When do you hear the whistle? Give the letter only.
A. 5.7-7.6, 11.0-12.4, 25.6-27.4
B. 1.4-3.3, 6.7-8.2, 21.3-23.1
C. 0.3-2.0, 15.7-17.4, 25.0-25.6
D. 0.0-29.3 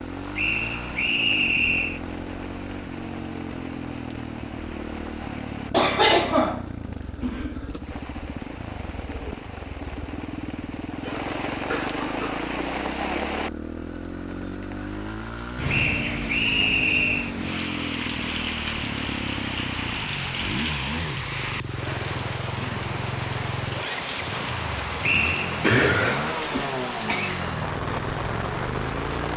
C.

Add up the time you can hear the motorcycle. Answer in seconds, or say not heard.
29 s.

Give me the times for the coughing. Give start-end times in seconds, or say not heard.
5.7-7.6, 11.0-12.4, 25.6-27.4.